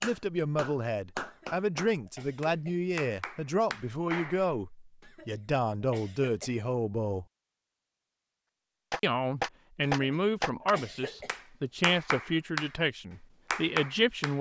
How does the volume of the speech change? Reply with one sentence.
The volume of the speech stays about the same.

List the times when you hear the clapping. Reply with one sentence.
You can hear the clapping from 0.0 to 4.5 s, from 8.9 to 12.8 s and from 13.5 to 14.3 s.